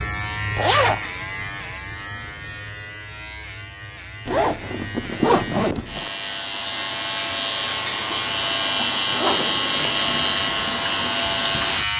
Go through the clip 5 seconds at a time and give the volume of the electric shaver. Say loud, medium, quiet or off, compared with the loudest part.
medium, loud, loud.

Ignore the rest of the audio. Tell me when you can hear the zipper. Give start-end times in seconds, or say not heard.
0.6-1.1, 4.2-6.1, 8.9-10.3.